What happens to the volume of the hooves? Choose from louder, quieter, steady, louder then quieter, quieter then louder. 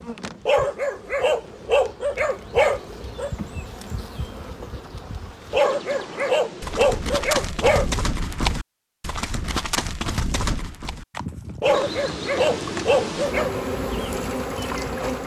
quieter.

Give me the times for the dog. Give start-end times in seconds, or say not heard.
0.5-3.3, 5.5-8.1, 11.6-13.5.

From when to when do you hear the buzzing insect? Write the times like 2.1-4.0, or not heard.
0.0-7.2, 11.7-15.2.